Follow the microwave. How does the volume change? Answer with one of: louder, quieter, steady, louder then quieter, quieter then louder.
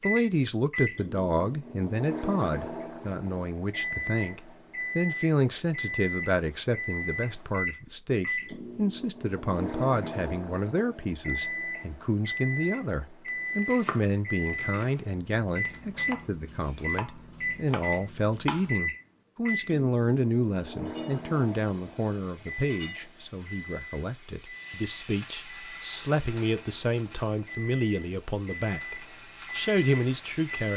quieter.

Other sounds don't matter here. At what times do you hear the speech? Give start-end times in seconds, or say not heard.
0.0-30.7.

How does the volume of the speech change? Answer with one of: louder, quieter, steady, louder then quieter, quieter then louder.
steady.